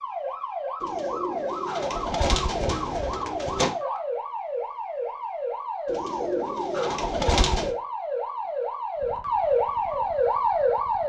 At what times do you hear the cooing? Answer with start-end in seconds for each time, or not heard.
0.8-3.7, 5.8-7.8.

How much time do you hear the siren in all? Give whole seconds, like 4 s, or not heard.
11 s.